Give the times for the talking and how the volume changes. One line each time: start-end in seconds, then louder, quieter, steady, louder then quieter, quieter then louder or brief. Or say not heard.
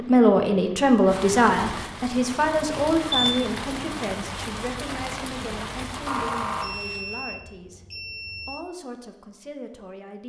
0.0-10.2 quieter.